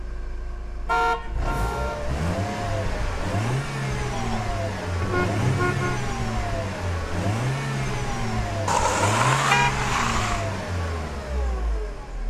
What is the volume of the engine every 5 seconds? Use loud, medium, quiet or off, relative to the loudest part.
loud, loud, medium.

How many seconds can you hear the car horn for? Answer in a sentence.
The car horn can be heard for 4 seconds in total.